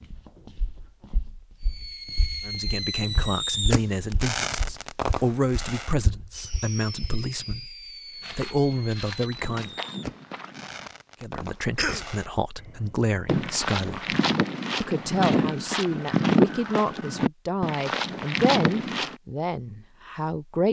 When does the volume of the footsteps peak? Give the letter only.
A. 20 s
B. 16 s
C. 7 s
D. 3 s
B.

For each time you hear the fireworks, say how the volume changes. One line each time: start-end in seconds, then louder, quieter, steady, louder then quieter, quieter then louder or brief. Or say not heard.
1.6-13.7 quieter.